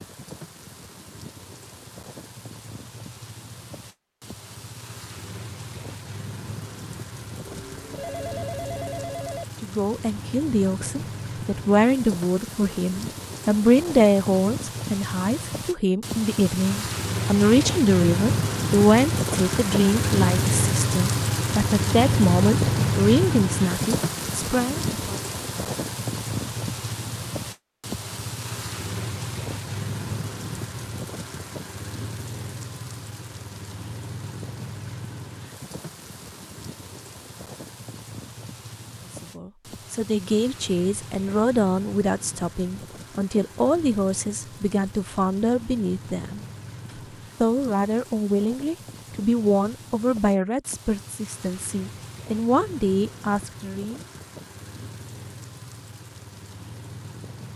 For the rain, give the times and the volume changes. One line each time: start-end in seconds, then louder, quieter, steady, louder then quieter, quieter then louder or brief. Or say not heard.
0.0-57.5 louder then quieter.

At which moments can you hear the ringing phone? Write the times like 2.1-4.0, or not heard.
7.5-9.4.